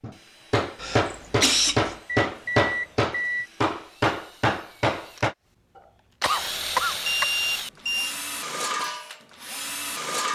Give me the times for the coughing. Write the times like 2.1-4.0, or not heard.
0.8-1.9, 6.2-7.2.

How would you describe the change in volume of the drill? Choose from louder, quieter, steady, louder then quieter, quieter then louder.
louder.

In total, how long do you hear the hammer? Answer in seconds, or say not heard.
5 s.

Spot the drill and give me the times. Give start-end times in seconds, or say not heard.
0.0-10.2.